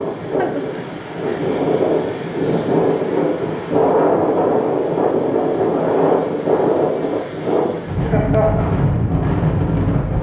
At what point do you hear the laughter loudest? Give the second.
8 s.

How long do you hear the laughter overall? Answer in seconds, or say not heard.
2 s.